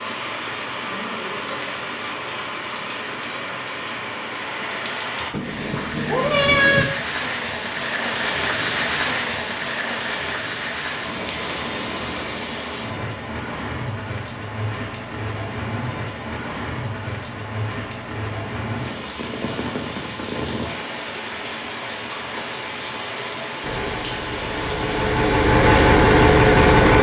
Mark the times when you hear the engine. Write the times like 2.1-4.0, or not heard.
23.6-26.9.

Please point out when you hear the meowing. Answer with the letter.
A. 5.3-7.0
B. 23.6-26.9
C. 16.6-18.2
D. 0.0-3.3
A.